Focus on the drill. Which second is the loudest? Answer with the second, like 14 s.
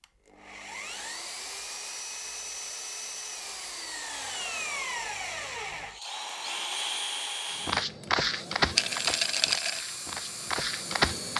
7 s.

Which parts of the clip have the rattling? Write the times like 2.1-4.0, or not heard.
8.8-9.8.